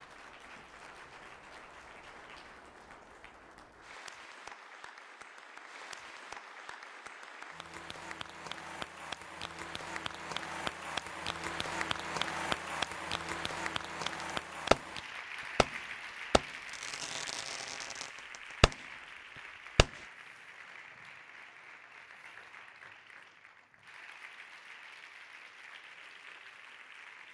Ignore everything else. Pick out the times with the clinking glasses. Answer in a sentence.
You can't hear the clinking glasses here.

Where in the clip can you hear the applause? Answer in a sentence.
The applause can be heard from 0.0 to 27.3 s.